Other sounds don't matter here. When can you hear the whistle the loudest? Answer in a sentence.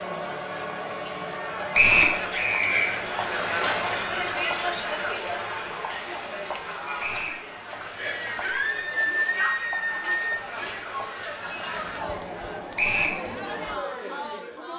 The loudest moment of the whistle is at 2 seconds.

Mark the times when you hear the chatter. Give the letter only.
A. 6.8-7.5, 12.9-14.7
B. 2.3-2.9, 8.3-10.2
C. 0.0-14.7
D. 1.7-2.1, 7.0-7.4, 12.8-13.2
C.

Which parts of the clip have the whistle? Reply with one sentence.
You can hear the whistle from 1.7 to 2.1 s, from 7.0 to 7.4 s and from 12.8 to 13.2 s.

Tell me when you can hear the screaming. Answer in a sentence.
You can hear the screaming from 2.3 to 2.9 s and from 8.3 to 10.2 s.